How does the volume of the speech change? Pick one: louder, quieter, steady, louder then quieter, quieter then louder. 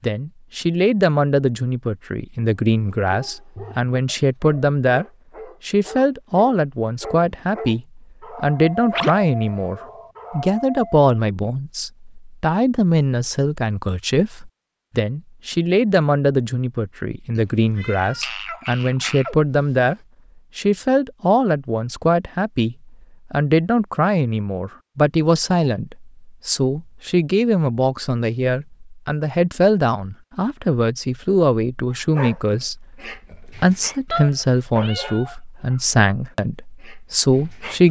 steady.